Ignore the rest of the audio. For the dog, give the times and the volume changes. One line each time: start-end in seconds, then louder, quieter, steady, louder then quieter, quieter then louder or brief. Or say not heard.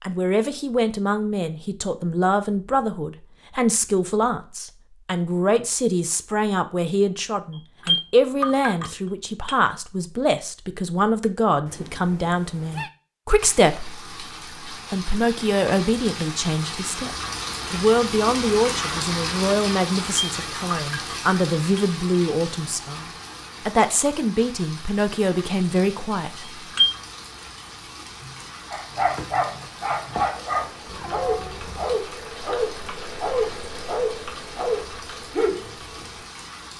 28.7-36.0 steady.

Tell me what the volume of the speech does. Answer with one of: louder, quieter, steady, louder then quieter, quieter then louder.
steady.